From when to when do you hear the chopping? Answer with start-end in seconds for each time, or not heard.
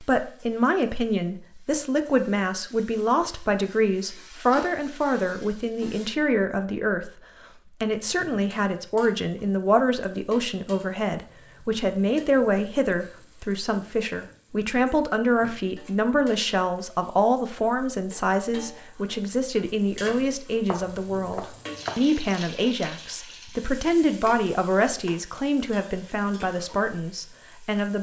20.7-22.1.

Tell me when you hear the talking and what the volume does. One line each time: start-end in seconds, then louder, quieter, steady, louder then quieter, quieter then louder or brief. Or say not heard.
0.0-27.9 steady.